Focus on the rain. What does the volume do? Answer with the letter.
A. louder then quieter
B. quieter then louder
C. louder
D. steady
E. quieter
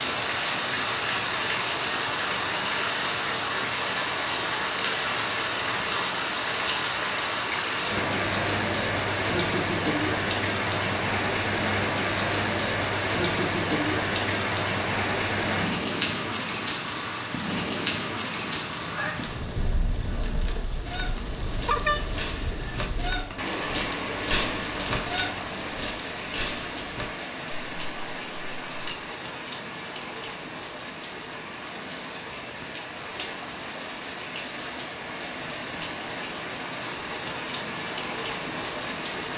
E.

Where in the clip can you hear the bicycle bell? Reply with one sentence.
You can hear the bicycle bell from 21.6 to 22.9 s.